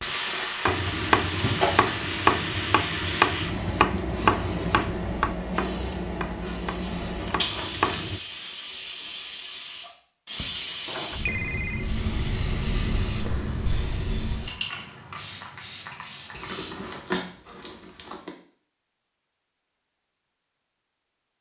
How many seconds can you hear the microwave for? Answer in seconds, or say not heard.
not heard.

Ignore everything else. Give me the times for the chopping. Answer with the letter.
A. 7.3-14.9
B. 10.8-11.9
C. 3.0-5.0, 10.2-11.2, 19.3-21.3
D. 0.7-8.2
D.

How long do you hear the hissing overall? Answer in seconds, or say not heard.
17 s.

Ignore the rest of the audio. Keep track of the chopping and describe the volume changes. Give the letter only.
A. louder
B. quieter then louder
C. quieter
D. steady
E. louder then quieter
C.